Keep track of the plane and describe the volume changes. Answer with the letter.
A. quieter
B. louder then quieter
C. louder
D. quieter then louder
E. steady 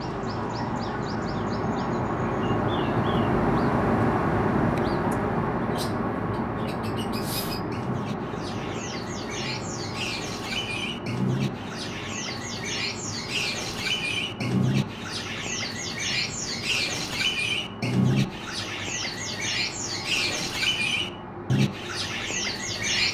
A.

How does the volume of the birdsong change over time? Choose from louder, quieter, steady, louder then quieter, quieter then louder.
louder.